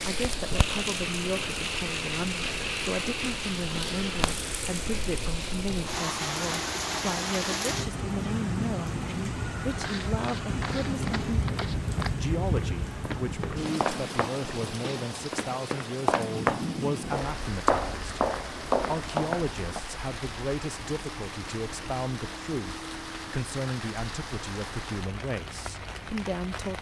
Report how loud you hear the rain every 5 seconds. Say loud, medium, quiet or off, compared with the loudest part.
loud, loud, loud, medium, medium, medium.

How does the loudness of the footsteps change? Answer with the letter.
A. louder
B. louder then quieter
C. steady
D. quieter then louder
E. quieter
A.